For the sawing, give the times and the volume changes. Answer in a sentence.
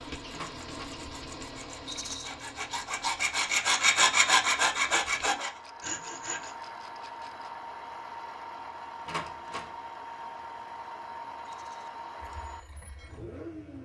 The sawing can be heard from 0.0 to 6.5 s, getting louder then quieter.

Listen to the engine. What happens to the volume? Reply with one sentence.
The loudness of the engine goes down, then up.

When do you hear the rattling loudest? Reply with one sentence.
The loudest moment of the rattling is at 2 seconds.